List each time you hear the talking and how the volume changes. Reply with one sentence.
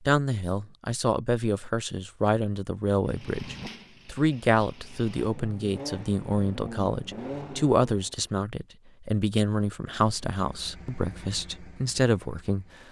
You can hear the talking from 0.1 to 12.7 s, at a steady volume.